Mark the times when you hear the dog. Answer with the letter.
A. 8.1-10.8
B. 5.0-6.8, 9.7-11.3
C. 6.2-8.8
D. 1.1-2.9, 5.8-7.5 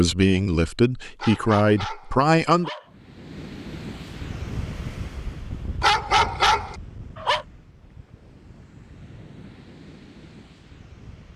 D.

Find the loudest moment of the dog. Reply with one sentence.
The volume of the dog peaks at 6 seconds.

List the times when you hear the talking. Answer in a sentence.
The talking can be heard from 0.0 to 2.7 s.